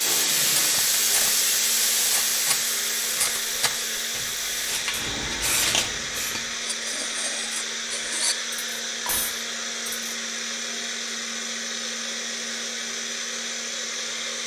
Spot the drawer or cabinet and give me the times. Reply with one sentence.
You can't hear the drawer or cabinet here.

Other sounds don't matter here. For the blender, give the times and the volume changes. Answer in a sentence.
The blender can be heard from 0.0 to 14.4 s, at a steady volume.